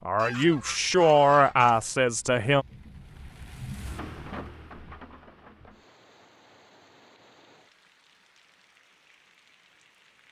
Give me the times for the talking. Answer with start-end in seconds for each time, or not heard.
0.1-2.6.